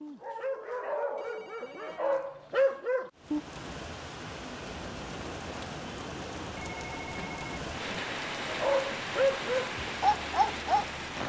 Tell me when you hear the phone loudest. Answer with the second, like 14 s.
7 s.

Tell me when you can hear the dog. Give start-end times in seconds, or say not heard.
0.0-3.4, 8.4-11.2.